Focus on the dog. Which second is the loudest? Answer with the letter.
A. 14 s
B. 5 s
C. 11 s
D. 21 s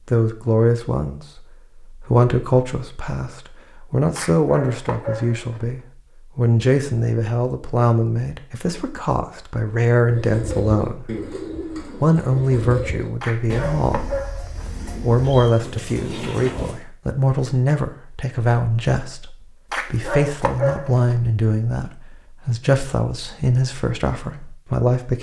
D.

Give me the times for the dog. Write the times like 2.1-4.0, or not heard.
4.2-5.7, 13.2-14.7, 19.7-21.1.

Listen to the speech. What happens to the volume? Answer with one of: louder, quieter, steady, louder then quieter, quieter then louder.
steady.